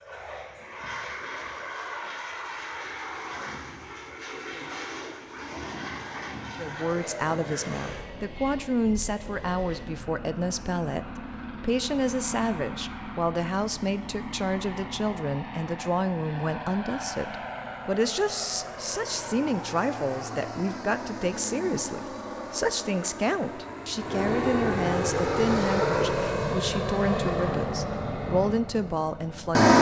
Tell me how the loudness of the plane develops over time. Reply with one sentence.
The volume of the plane goes up.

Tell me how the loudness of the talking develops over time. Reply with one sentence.
The volume of the talking stays about the same.